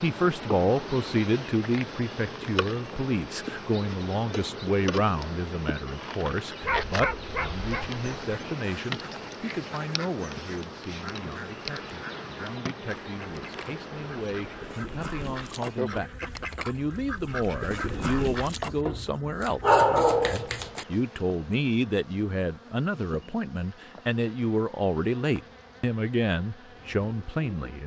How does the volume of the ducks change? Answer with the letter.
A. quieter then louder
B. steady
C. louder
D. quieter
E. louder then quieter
C.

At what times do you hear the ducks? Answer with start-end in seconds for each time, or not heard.
8.0-18.8.